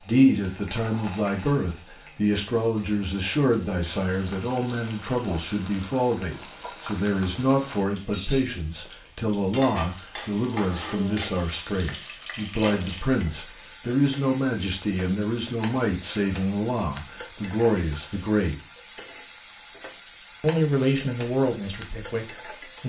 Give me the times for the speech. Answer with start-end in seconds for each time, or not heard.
0.0-18.6, 20.4-22.8.